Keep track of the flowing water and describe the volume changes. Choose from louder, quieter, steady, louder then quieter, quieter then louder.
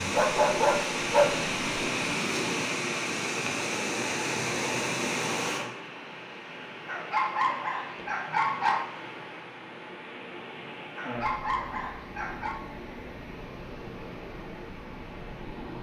quieter.